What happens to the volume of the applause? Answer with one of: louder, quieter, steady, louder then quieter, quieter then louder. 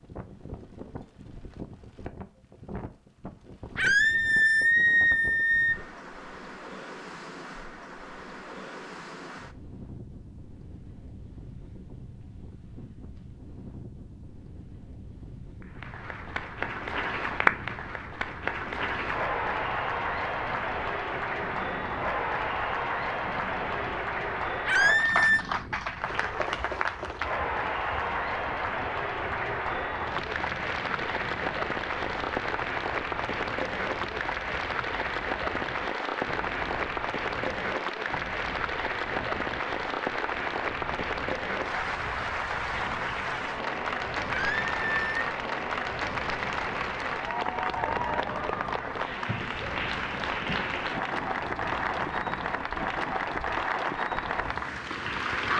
steady.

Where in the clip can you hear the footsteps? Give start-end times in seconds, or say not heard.
not heard.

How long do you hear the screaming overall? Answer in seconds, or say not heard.
4 s.